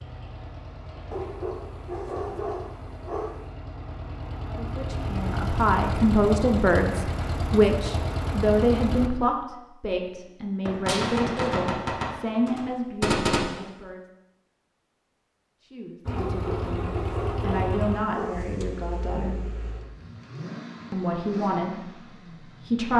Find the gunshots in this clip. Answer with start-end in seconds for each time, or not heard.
10.7-13.6.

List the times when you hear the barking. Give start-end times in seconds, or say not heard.
1.1-3.5, 16.1-18.5.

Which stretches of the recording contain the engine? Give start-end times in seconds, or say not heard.
0.0-9.1, 16.1-22.9.